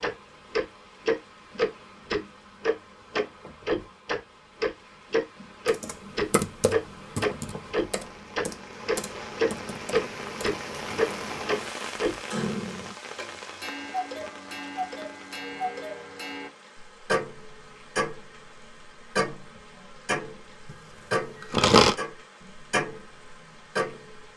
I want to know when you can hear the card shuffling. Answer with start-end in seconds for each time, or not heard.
20.7-21.9.